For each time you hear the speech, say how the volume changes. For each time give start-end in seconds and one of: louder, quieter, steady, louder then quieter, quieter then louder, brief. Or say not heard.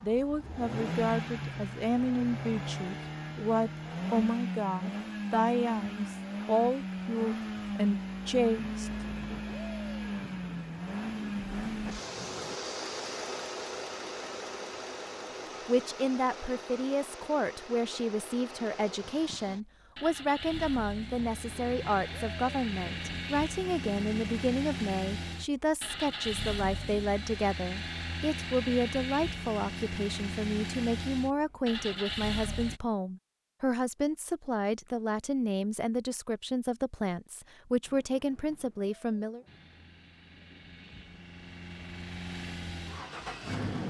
0.0-9.3 steady
15.7-39.4 steady.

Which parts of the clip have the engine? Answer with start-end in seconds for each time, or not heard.
0.0-32.8, 39.5-43.8.